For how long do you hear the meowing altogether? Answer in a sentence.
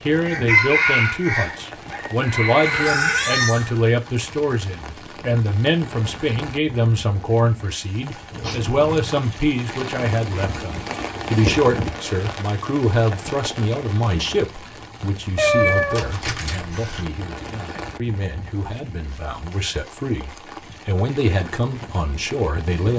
The meowing can be heard for 4 seconds in total.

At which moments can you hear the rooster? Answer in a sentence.
You can hear the rooster from 0.2 to 3.5 s.